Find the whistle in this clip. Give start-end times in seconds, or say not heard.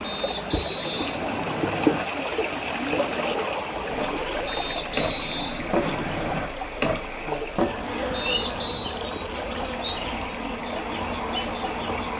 0.0-2.0, 4.5-6.5, 8.1-9.0.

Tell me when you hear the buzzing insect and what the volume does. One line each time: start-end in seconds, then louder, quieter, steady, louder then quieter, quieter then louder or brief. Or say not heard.
0.0-12.1 quieter then louder.